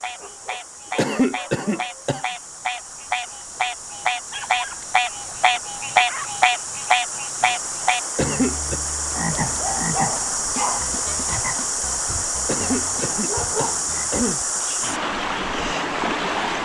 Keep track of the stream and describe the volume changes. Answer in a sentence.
The volume of the stream goes up.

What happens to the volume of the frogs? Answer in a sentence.
The loudness of the frogs goes up, then down.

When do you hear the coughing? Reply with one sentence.
You can hear the coughing from 0.9 to 2.2 s, from 8.2 to 8.8 s and from 12.4 to 14.4 s.